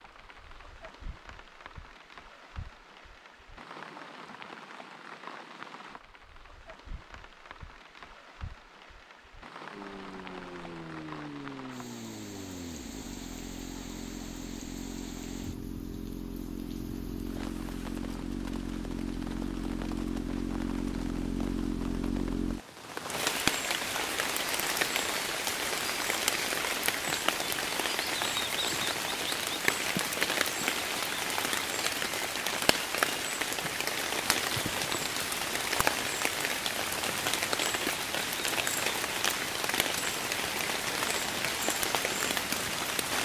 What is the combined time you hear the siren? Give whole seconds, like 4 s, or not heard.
not heard.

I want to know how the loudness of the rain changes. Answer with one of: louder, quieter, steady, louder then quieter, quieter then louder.
louder.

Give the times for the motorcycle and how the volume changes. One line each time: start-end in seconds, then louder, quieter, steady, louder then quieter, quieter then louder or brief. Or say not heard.
9.7-22.6 louder.